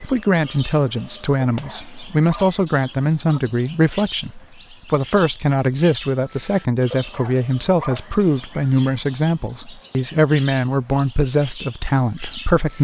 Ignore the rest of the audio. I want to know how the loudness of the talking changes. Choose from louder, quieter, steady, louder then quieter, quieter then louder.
steady.